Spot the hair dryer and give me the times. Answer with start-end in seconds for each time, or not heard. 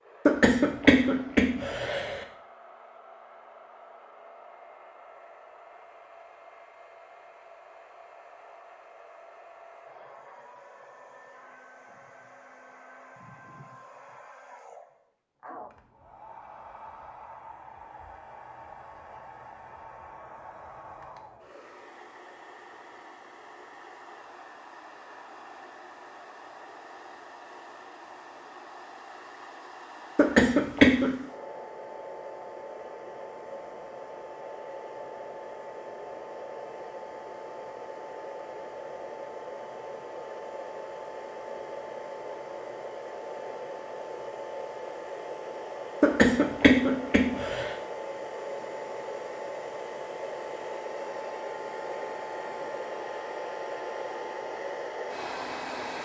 0.0-55.9.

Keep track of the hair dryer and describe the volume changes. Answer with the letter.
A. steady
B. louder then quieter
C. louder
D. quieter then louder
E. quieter
C.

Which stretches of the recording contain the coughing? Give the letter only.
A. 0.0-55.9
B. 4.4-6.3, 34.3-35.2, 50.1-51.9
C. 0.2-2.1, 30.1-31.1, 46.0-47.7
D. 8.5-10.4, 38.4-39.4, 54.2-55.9
C.